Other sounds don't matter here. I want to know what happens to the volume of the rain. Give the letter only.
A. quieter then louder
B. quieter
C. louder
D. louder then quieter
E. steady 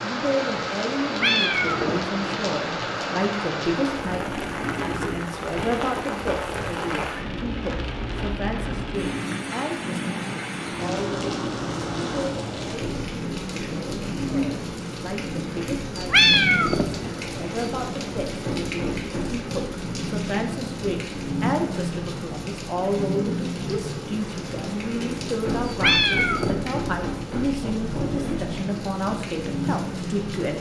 E.